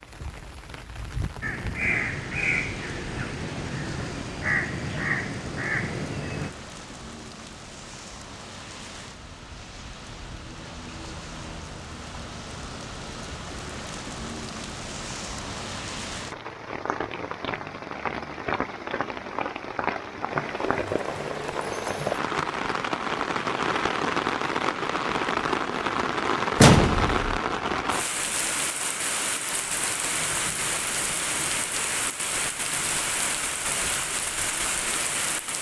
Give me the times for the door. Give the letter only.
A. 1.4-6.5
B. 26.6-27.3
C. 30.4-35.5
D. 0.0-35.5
B.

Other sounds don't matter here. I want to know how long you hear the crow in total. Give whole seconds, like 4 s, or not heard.
5 s.